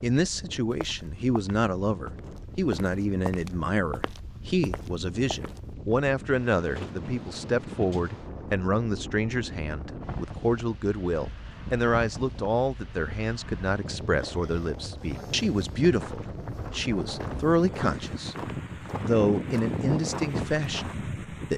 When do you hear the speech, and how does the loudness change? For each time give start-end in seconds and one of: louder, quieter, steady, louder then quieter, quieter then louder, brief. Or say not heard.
0.0-18.4 steady
18.9-21.5 brief.